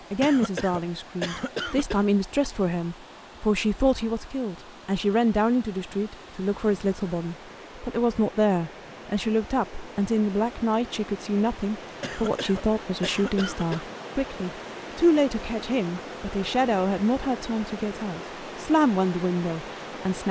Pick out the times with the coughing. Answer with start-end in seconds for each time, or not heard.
0.2-2.0, 12.0-13.9.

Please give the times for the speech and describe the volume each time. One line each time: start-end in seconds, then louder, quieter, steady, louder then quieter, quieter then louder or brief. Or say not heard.
0.1-20.2 steady.